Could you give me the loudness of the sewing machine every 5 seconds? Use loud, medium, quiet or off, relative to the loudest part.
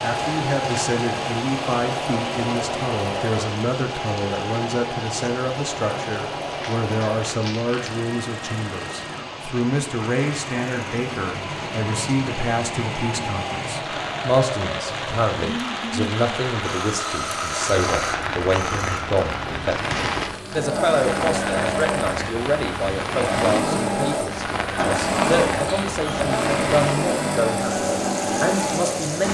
medium, medium, medium, medium, loud, loud.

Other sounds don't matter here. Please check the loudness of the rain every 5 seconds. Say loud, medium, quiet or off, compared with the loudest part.
loud, medium, loud, loud, loud, loud.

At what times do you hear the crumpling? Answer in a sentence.
The crumpling can be heard from 6.5 to 8.0 s and from 19.7 to 20.8 s.